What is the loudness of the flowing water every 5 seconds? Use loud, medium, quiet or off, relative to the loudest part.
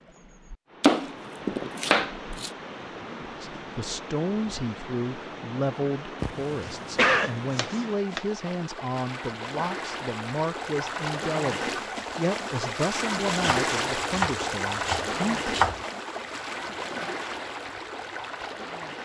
medium, medium, loud, loud.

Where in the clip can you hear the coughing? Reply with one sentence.
The coughing can be heard from 6.2 to 7.3 s.